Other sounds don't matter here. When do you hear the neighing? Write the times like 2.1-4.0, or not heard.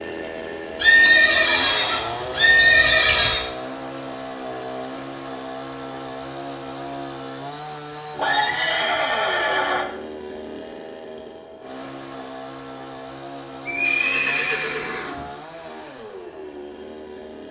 0.8-3.5, 8.2-9.8, 13.7-15.2.